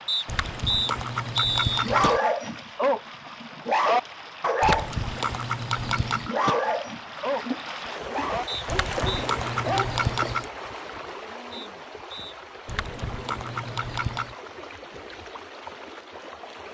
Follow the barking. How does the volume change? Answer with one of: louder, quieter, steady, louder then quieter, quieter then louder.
quieter.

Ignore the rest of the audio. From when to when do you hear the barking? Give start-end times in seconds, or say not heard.
1.8-5.0, 5.8-10.0.